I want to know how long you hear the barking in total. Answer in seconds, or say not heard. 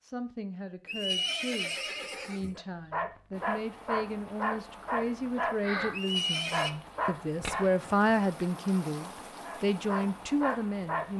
7 s.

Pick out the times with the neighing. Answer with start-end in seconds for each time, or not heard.
0.8-2.6, 5.9-6.7.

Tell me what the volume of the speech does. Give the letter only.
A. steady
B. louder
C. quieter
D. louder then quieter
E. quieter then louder
B.